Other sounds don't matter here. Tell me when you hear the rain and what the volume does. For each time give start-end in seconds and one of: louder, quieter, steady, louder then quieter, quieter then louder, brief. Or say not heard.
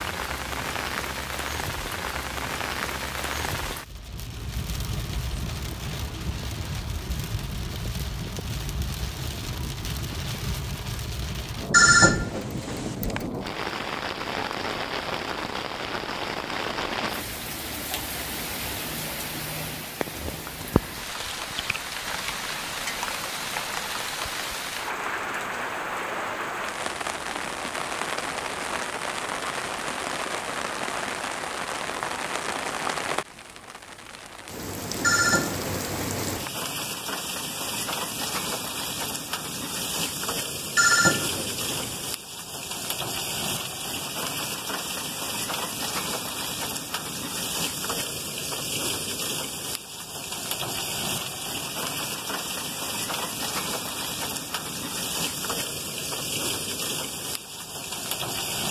0.0-58.6 steady.